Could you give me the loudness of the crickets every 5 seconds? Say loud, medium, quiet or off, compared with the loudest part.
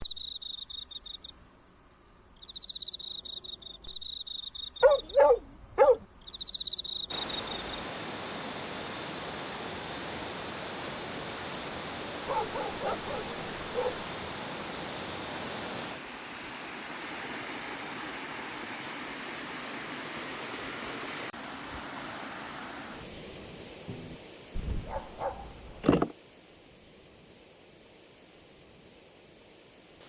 medium, loud, loud, loud, loud, off.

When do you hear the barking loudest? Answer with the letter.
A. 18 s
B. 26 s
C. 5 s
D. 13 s
C.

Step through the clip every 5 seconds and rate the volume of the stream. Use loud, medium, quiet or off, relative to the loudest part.
off, loud, loud, loud, loud, quiet.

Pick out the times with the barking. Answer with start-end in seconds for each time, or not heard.
4.8-6.0, 12.2-14.1, 24.6-26.1.